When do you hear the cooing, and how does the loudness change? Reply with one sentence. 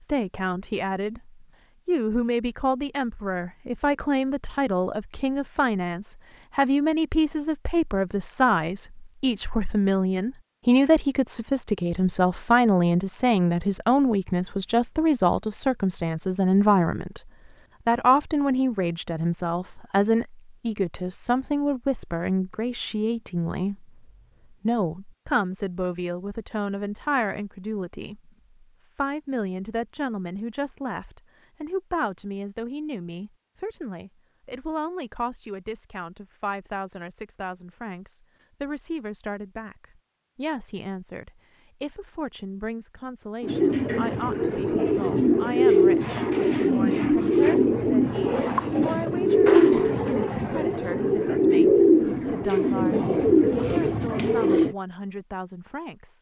You can hear the cooing from 43.4 to 54.8 s, at a steady volume.